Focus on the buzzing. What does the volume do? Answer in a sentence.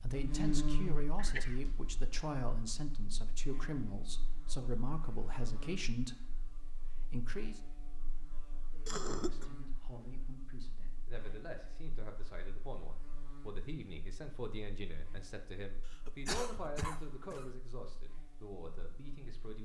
The loudness of the buzzing goes down.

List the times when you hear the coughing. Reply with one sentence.
The coughing can be heard from 1.1 to 1.6 s, from 8.8 to 9.4 s and from 15.8 to 17.5 s.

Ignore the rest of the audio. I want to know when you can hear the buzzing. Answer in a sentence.
The buzzing can be heard from 0.0 to 19.5 s.